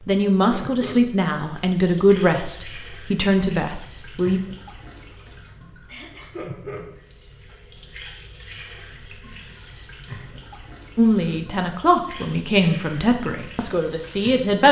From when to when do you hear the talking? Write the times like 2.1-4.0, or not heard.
0.1-4.4, 10.9-14.6.